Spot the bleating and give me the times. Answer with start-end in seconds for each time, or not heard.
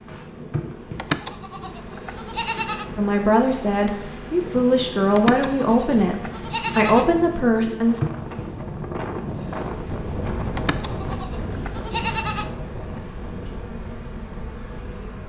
0.9-2.9, 5.2-7.1, 10.6-12.5.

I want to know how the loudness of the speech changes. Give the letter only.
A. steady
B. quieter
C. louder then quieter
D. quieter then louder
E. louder
A.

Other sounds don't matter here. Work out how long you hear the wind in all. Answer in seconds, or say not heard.
15 s.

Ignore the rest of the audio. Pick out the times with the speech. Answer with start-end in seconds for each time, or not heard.
3.0-8.0.